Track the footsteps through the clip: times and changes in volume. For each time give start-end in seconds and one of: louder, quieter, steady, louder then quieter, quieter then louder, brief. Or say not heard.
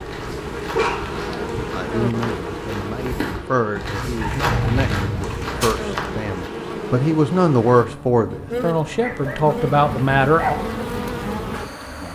0.0-6.5 louder.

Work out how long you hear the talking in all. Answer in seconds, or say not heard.
9 s.